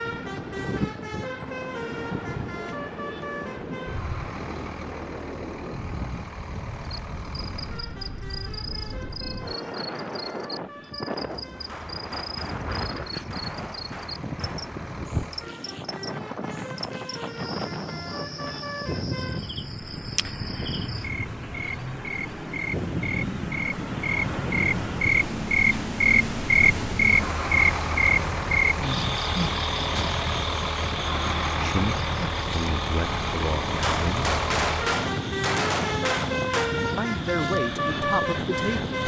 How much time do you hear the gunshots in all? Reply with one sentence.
The gunshots can be heard for 6 seconds in total.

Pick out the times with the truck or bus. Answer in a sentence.
You can hear the truck or bus from 0.0 to 39.0 s.